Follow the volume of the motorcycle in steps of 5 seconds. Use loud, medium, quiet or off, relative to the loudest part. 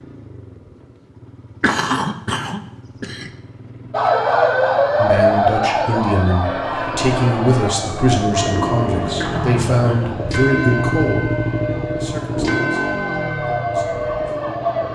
quiet, loud, loud.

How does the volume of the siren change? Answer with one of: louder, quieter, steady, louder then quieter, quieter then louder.
quieter then louder.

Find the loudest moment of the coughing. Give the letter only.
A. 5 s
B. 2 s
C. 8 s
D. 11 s
B.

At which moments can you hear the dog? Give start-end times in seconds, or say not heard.
not heard.